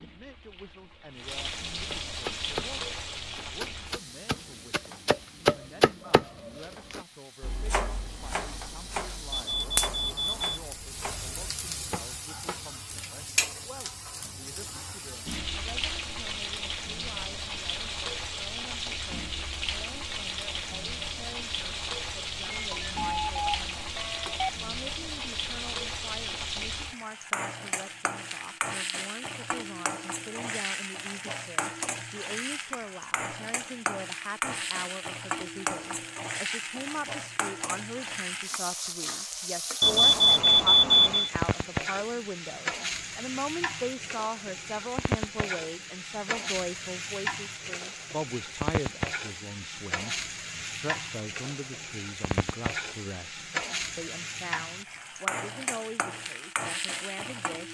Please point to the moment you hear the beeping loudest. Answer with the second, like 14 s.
41 s.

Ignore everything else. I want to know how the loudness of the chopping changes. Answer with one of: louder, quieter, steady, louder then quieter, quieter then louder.
louder then quieter.